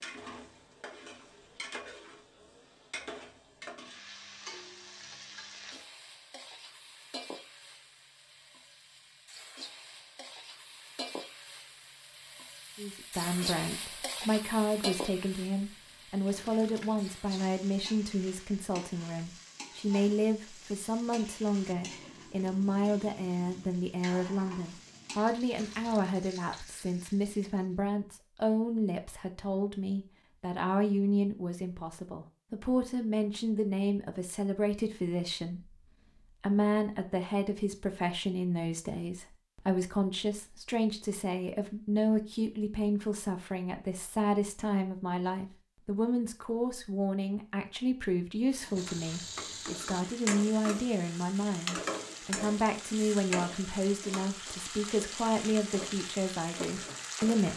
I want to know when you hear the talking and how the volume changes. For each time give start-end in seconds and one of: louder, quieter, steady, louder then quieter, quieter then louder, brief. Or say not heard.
12.8-57.5 steady.